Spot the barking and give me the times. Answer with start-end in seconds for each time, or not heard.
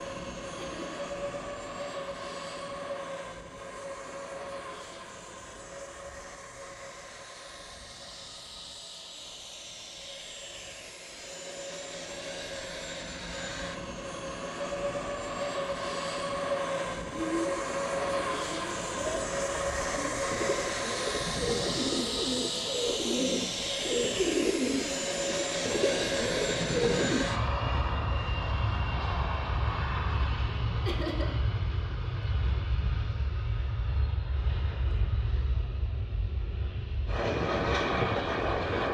not heard.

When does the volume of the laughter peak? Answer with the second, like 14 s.
31 s.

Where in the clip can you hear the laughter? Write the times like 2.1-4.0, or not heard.
0.6-1.1, 30.9-31.4.